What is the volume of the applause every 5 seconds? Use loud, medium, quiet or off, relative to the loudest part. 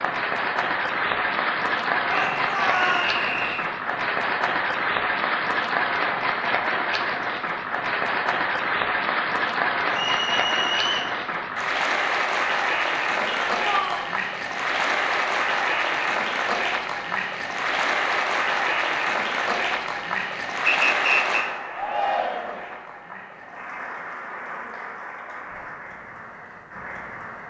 loud, loud, loud, loud, medium, quiet.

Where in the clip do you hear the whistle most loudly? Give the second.
21 s.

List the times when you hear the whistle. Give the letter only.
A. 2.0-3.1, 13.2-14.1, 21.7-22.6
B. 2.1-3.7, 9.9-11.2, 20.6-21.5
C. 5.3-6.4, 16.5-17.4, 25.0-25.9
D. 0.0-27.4
B.